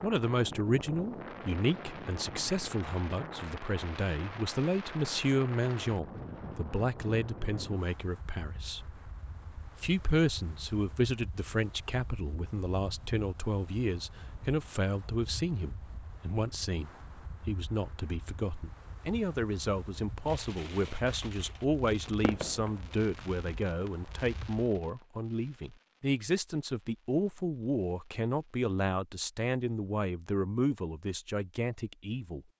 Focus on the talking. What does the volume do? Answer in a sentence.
The volume of the talking stays about the same.